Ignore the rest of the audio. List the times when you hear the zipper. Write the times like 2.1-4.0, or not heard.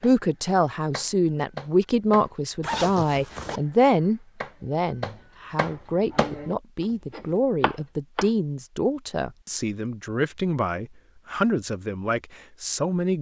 2.6-3.6.